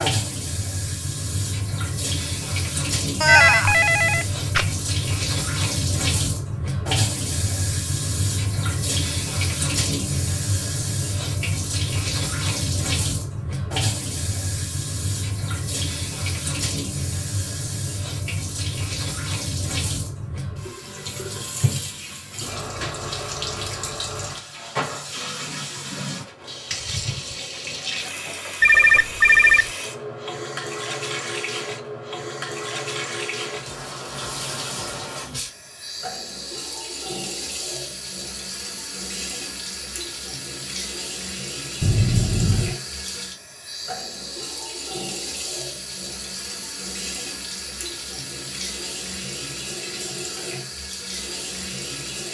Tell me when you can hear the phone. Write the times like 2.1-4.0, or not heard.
3.2-4.7, 28.6-29.7, 41.8-42.8.